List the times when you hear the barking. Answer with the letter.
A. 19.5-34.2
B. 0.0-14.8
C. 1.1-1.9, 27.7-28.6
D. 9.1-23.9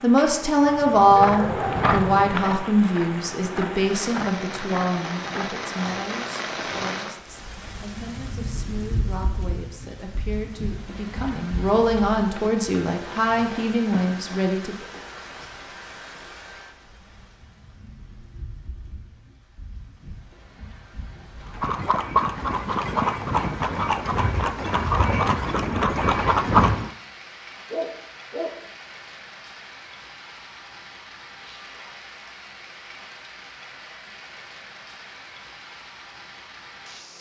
C.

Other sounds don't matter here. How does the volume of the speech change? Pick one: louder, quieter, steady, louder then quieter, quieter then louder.
quieter then louder.